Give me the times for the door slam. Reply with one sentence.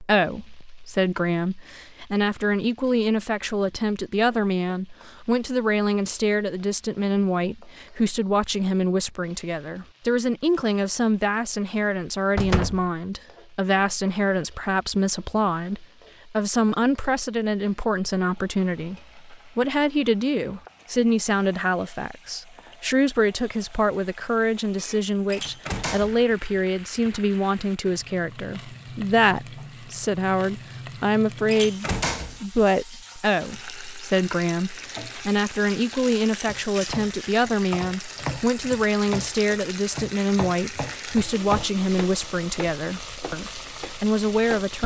The door slam can be heard from 12.3 to 12.9 s, from 25.3 to 26.2 s and from 31.4 to 32.4 s.